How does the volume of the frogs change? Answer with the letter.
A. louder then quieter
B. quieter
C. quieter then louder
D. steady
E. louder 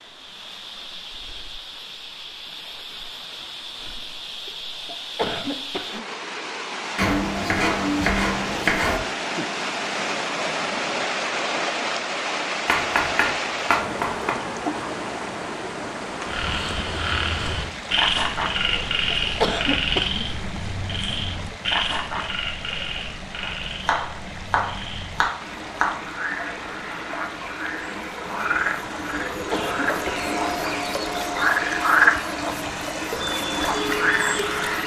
C.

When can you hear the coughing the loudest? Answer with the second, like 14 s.
20 s.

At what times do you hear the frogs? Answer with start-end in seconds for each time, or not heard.
16.2-34.8.